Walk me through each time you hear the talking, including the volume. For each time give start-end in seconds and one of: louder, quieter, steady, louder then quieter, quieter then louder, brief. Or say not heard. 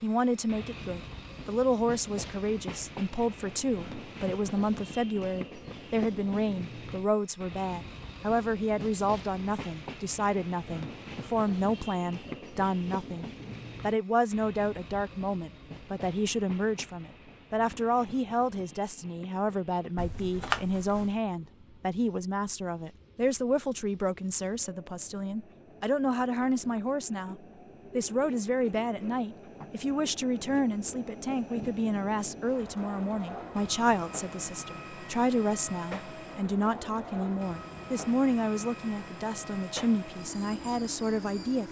0.0-41.6 steady.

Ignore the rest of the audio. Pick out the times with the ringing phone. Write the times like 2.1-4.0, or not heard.
19.9-21.1.